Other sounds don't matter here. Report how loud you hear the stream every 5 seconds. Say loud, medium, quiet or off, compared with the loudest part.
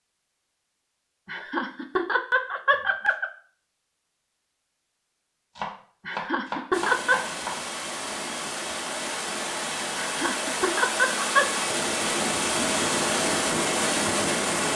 off, medium, loud.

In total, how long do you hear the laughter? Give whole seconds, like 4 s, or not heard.
5 s.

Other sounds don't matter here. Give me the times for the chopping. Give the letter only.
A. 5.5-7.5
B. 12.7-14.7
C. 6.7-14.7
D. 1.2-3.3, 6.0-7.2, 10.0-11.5
A.